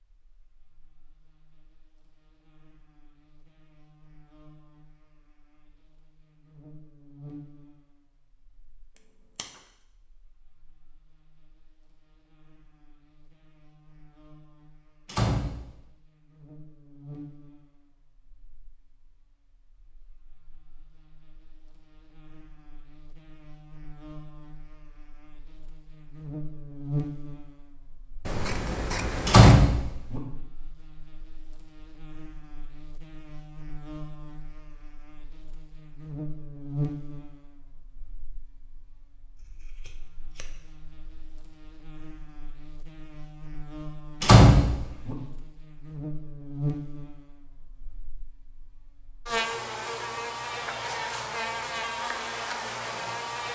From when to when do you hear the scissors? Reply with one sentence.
You can hear the scissors from 8.9 to 9.6 s, from 28.2 to 29.6 s and from 39.4 to 41.3 s.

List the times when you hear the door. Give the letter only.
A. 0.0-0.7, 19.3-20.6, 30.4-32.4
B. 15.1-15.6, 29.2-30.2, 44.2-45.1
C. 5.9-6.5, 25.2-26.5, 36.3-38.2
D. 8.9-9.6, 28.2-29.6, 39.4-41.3
B.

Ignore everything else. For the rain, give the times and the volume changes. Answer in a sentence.
The rain can't be heard in this clip.